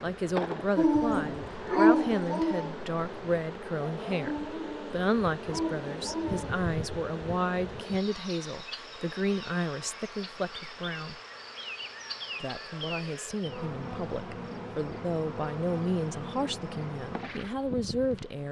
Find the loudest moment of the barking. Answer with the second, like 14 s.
2 s.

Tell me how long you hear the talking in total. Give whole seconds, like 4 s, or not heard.
17 s.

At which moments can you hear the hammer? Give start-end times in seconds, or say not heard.
not heard.